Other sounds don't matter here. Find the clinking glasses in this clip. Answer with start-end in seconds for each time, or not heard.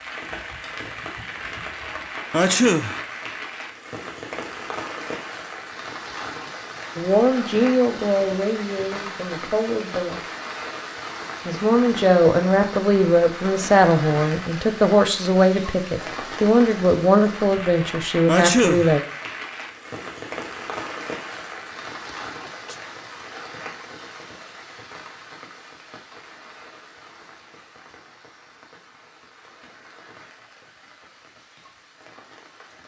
not heard.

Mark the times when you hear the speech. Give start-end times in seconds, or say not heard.
7.0-10.2, 11.4-19.0.